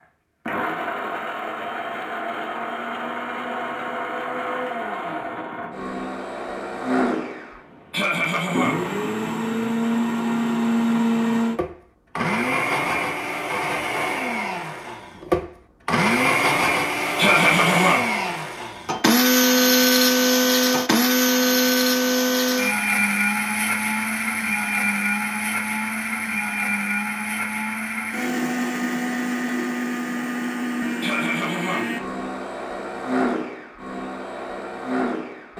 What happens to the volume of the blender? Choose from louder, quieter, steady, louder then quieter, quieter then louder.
louder then quieter.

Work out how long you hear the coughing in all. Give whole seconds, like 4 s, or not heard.
3 s.